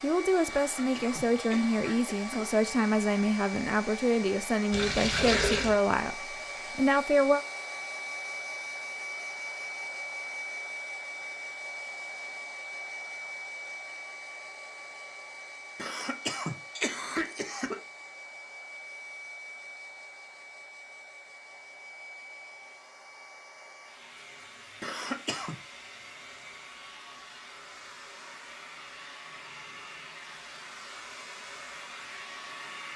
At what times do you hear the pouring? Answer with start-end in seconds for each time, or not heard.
4.7-5.8.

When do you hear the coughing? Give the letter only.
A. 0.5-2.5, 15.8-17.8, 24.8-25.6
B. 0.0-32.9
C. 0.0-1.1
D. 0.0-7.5
A.